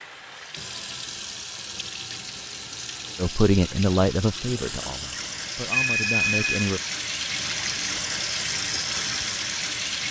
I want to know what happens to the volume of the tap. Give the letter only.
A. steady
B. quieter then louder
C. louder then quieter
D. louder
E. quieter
D.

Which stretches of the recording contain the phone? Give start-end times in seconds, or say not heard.
5.3-7.2.